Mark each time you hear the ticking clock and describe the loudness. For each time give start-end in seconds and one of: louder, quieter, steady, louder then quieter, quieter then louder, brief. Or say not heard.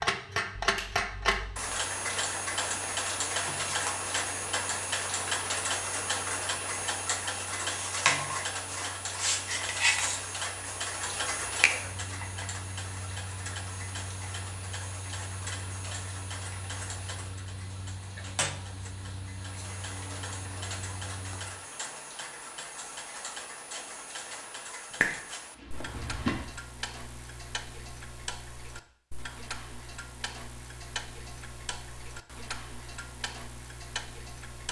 0.0-34.6 quieter.